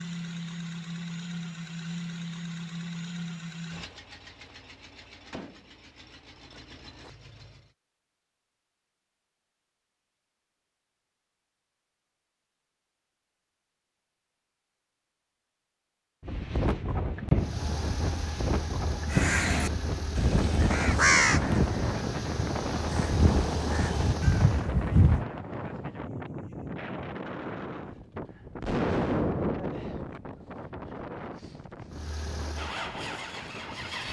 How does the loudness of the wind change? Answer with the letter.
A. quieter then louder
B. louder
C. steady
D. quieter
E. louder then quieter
D.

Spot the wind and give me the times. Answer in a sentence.
You can hear the wind from 16.2 to 34.0 s.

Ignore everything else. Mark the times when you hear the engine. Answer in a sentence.
You can hear the engine from 0.0 to 7.8 s, from 17.4 to 24.7 s and from 31.9 to 34.0 s.